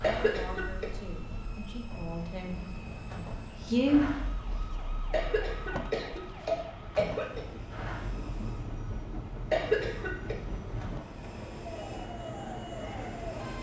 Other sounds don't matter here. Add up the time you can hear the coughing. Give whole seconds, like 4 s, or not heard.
4 s.